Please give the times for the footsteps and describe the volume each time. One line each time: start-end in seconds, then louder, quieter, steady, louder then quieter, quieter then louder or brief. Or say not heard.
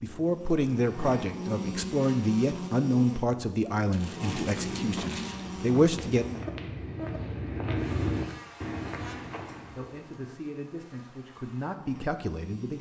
4.5-10.1 louder then quieter.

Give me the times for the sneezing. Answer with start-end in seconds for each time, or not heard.
not heard.